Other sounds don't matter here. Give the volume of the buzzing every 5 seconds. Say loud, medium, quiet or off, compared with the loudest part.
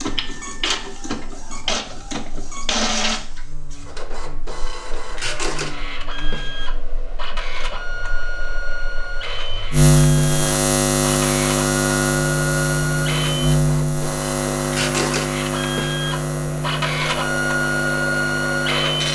quiet, medium, loud, medium.